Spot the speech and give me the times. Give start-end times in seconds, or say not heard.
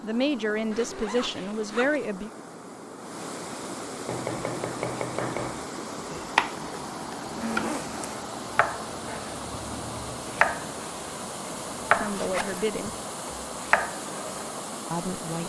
0.0-2.3, 11.9-12.9, 14.9-15.4.